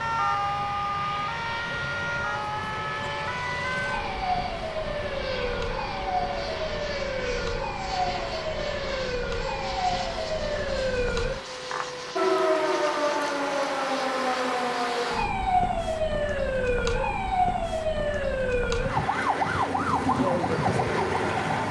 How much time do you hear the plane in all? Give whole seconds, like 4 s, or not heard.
15 s.